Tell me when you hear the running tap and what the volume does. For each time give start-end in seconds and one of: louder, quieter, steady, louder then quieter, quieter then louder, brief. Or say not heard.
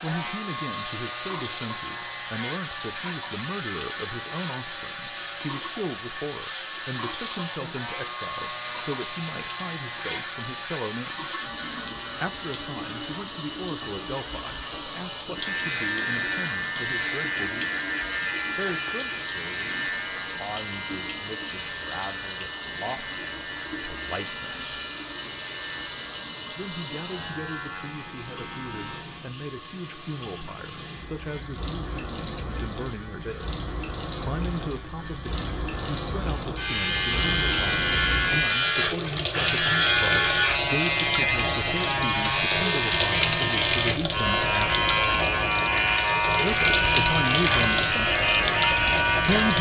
0.0-49.5 louder.